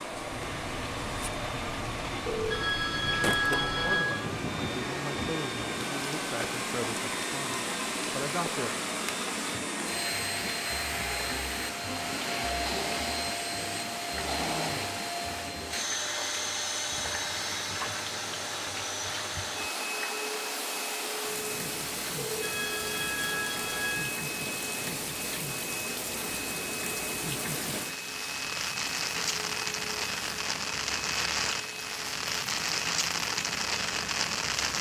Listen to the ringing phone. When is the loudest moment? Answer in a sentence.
The volume of the ringing phone peaks at 3 seconds.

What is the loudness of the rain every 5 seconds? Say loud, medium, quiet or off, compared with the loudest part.
medium, medium, medium, medium, medium, loud, loud.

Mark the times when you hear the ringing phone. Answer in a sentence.
You can hear the ringing phone from 2.2 to 4.2 s and from 22.1 to 24.1 s.